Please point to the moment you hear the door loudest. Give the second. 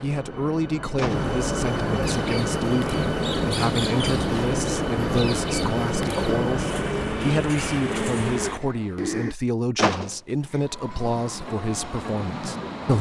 10 s.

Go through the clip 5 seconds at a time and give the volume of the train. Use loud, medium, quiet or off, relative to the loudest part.
loud, loud, medium.